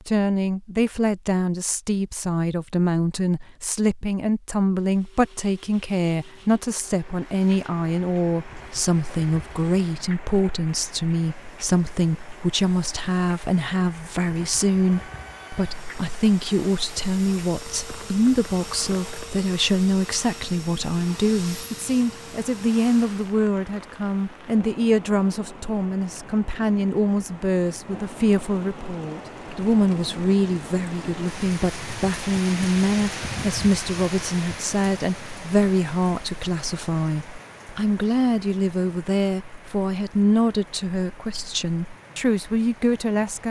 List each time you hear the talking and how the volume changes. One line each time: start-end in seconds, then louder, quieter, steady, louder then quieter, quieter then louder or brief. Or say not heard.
0.1-43.4 steady.